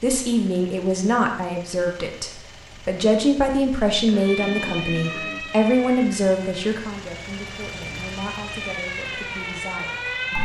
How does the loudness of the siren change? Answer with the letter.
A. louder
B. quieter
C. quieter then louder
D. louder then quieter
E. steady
C.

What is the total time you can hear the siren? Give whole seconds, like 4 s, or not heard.
6 s.